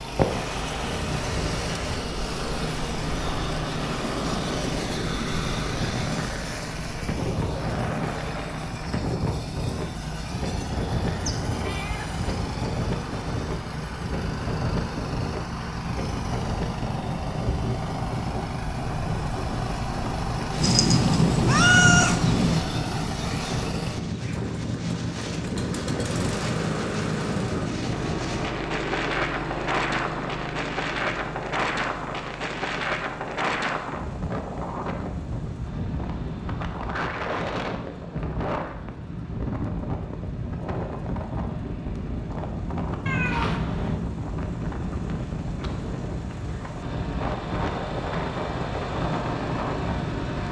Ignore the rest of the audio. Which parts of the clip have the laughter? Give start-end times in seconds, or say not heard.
not heard.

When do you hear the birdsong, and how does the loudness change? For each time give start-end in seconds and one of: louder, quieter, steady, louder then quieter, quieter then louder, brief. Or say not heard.
not heard.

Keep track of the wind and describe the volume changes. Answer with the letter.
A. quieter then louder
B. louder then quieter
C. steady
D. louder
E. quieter
C.